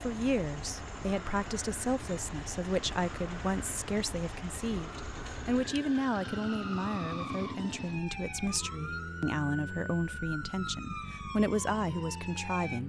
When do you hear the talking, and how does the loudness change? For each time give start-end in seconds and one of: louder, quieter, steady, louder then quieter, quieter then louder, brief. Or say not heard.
0.0-12.8 steady.